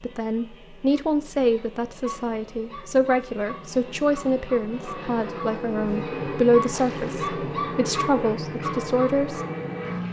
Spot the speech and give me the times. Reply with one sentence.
The speech can be heard from 0.0 to 9.4 s.